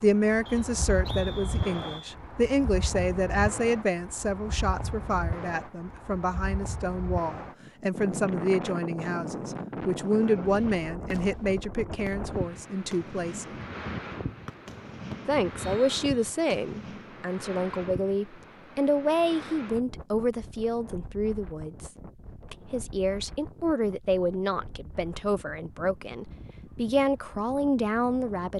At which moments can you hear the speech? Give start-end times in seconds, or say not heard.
0.0-13.6, 15.2-21.9, 22.5-28.5.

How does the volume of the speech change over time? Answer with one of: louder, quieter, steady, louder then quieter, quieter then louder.
steady.